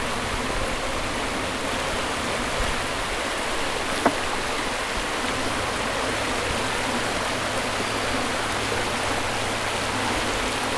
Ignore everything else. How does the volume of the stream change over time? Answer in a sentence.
The volume of the stream stays about the same.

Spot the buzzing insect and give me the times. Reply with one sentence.
The buzzing insect can be heard from 0.0 to 10.7 s.